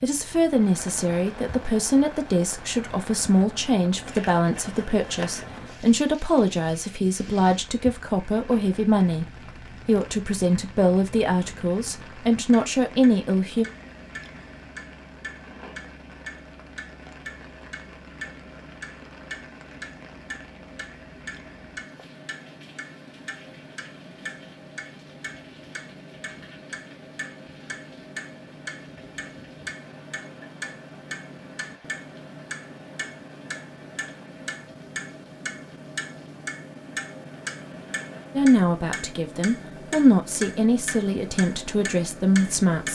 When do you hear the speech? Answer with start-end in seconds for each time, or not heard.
0.0-9.2, 9.8-13.7, 38.4-42.9.